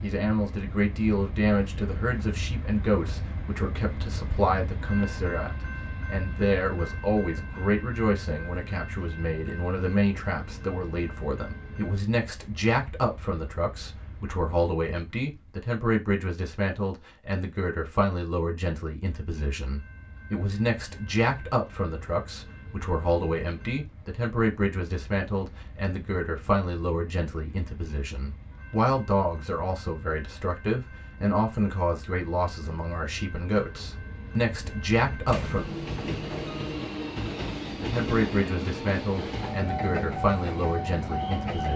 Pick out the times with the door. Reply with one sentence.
The door can be heard from 35.2 to 36.8 s.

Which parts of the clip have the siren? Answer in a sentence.
The siren can't be heard in this clip.